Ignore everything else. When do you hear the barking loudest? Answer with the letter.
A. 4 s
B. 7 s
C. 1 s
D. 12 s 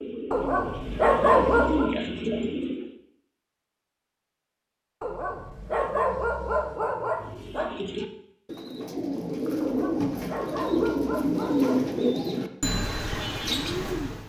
C.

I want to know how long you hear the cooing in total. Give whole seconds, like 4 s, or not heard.
10 s.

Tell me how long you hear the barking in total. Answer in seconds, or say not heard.
7 s.